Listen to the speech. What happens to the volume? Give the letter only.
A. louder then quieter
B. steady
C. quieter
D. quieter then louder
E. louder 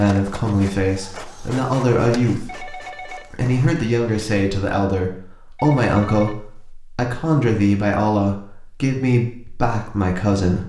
B.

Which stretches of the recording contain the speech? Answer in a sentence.
The speech can be heard from 0.0 to 10.6 s.